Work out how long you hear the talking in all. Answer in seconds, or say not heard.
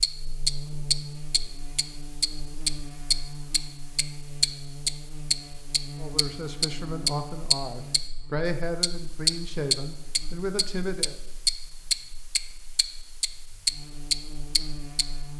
5 s.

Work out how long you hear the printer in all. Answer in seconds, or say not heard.
not heard.